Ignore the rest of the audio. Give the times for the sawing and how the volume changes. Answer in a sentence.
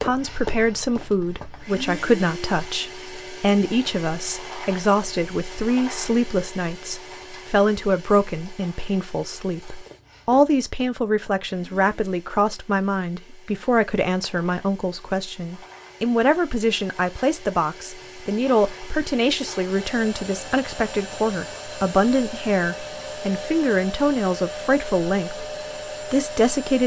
You can't hear the sawing here.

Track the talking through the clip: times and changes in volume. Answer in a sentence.
The talking can be heard from 0.0 to 26.8 s, at a steady volume.